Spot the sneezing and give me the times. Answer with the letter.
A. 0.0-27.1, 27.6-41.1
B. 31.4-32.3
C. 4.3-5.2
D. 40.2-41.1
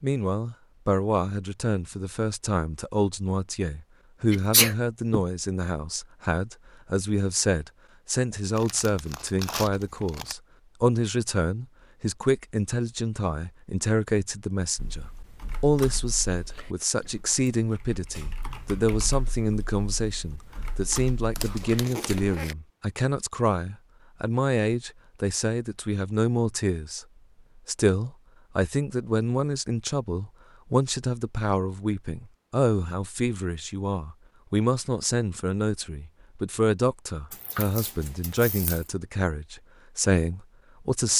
C.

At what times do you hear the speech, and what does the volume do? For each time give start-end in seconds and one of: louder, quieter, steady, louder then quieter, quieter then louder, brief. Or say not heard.
0.0-27.1 steady
27.6-41.1 steady.